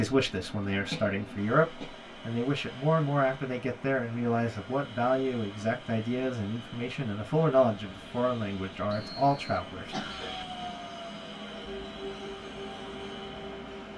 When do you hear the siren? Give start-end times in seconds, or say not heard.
10.2-13.9.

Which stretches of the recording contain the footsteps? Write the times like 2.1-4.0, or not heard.
not heard.